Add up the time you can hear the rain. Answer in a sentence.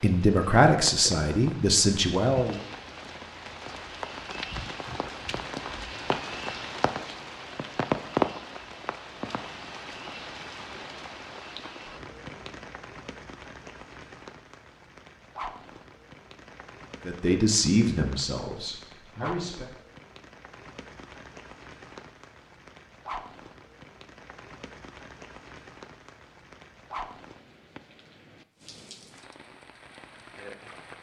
You can hear the rain for 31 seconds altogether.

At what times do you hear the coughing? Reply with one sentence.
The coughing can't be heard in this clip.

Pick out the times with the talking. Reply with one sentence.
The talking can be heard from 0.0 to 2.6 s and from 17.1 to 19.6 s.